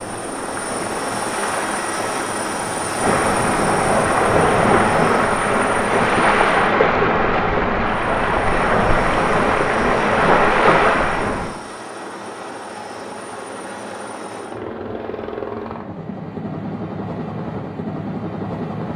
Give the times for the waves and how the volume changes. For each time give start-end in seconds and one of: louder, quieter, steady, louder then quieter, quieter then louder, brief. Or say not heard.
0.0-11.6 louder.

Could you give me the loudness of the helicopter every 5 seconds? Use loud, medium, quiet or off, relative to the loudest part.
loud, loud, medium, loud.